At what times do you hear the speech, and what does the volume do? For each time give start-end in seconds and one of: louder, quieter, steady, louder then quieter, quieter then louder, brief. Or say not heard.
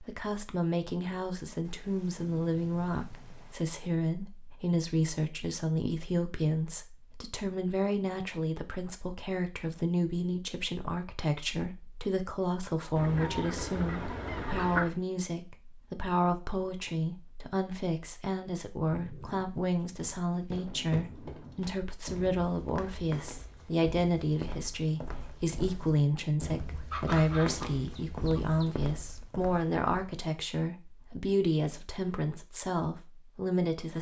0.0-33.9 steady.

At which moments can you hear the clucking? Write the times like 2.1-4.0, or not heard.
12.9-14.9, 26.9-28.6.